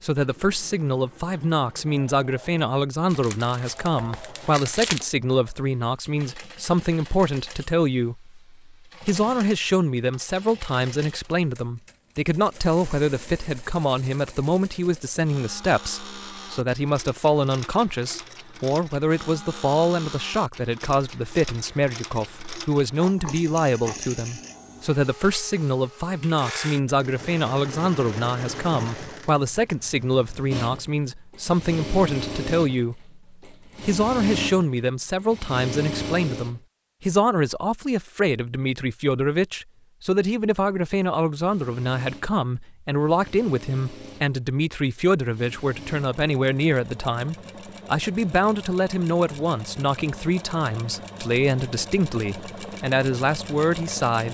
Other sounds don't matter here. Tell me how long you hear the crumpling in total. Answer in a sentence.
The crumpling can be heard for 2 seconds in total.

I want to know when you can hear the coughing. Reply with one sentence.
The coughing can't be heard in this clip.